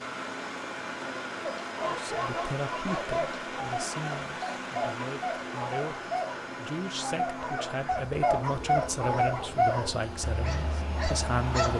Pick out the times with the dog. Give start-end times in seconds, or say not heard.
1.4-11.7.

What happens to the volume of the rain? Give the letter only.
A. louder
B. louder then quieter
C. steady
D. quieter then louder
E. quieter
E.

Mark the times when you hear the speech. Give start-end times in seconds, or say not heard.
1.9-11.7.